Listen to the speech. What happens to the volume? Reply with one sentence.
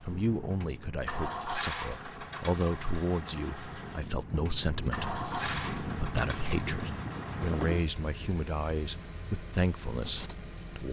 The loudness of the speech stays about the same.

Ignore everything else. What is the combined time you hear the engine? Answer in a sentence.
You can hear the engine for 11 seconds altogether.